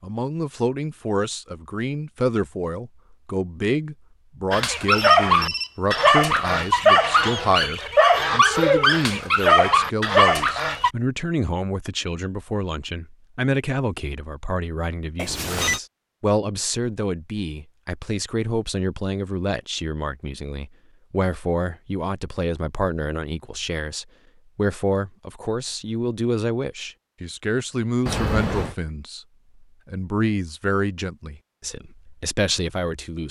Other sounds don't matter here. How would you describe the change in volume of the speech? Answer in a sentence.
The loudness of the speech stays about the same.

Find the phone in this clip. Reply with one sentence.
You can hear the phone from 4.9 to 6.0 s, from 15.2 to 15.8 s and from 28.1 to 28.8 s.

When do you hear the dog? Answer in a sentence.
The dog can be heard from 4.5 to 10.9 s.